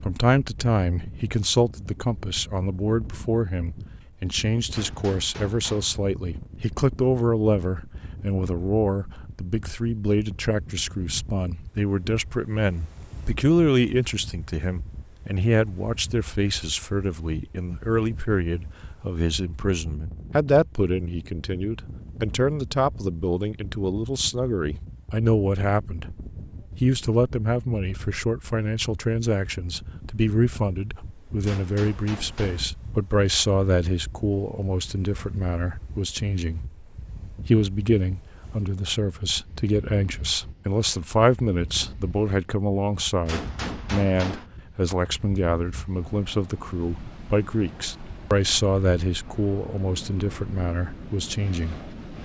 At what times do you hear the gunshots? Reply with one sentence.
The gunshots can be heard from 4.7 to 6.0 s, from 31.4 to 32.6 s and from 43.2 to 44.5 s.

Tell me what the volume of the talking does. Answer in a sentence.
The volume of the talking stays about the same.